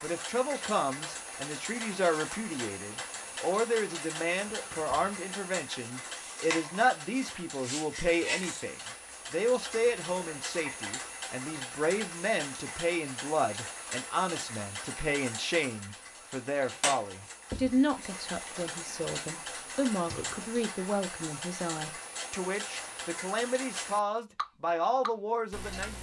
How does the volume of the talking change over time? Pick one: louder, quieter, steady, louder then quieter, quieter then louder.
steady.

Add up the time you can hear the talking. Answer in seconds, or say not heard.
26 s.